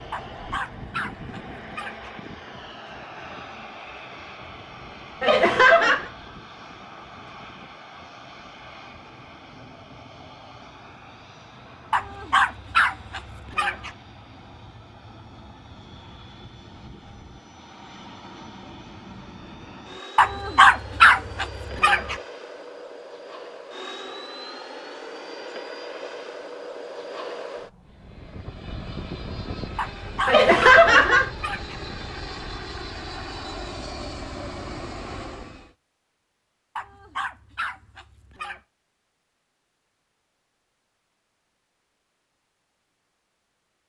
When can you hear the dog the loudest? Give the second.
21 s.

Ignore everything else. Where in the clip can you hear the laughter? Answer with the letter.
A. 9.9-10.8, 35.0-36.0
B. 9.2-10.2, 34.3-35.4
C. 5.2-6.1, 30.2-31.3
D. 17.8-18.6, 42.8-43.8
C.